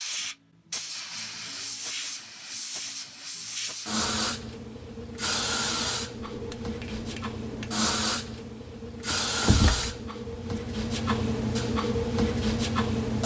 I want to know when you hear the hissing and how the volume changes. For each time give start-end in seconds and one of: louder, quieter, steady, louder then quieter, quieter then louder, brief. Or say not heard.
0.0-13.2 louder.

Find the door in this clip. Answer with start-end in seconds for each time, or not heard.
9.1-10.6.